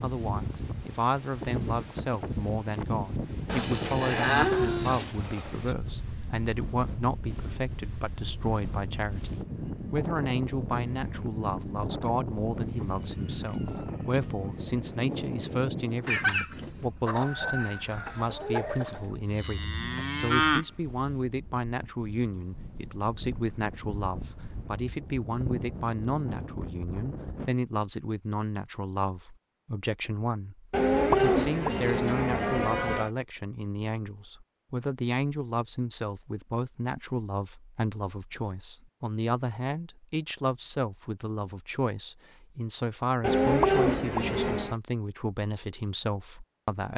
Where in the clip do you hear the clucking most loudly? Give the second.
16 s.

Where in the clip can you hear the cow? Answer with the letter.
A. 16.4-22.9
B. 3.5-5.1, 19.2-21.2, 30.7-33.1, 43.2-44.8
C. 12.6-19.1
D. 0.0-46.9
B.